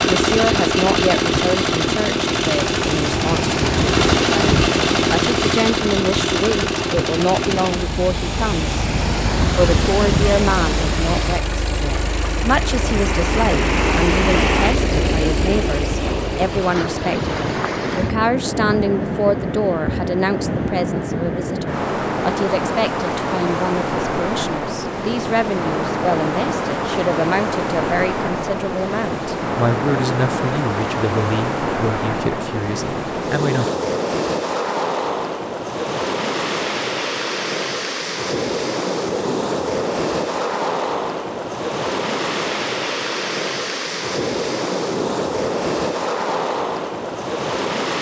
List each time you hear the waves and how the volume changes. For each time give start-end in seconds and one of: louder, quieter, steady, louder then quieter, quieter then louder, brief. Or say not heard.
0.0-47.9 steady.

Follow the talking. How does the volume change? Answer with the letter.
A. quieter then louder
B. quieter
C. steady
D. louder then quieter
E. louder
C.